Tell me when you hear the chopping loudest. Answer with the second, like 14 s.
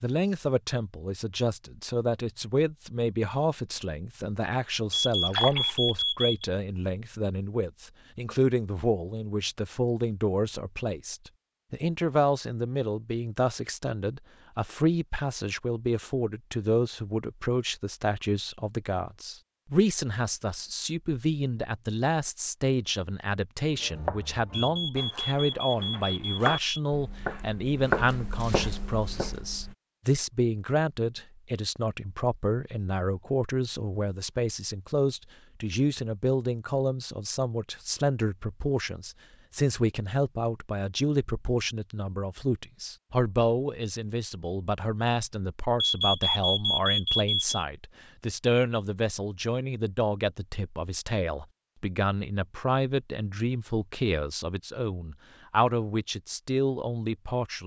28 s.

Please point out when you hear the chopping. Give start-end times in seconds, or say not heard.
23.8-29.8.